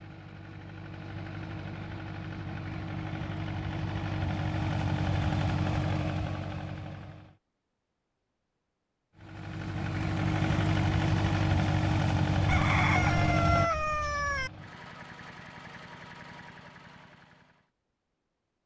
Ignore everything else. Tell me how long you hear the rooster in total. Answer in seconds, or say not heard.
2 s.